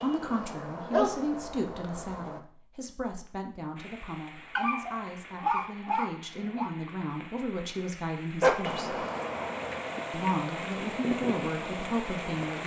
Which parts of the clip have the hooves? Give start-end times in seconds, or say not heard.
0.0-2.5, 8.7-12.6.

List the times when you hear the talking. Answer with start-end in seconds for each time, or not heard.
0.0-9.1, 10.1-12.6.